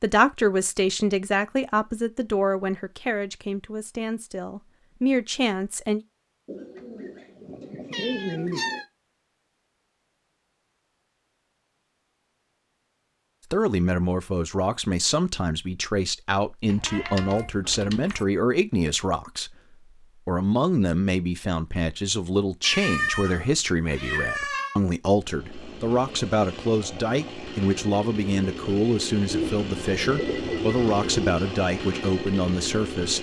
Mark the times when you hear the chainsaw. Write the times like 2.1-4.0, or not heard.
25.1-33.1.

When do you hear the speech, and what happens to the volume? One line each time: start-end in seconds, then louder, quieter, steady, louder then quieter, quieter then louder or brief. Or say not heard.
0.0-6.0 quieter then louder
13.5-19.6 steady
20.2-33.1 steady.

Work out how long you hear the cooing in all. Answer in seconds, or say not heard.
4 s.